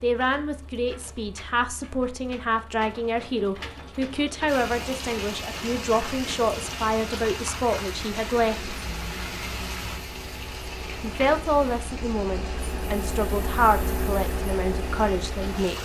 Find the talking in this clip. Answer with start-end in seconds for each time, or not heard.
0.0-8.8, 11.0-15.8.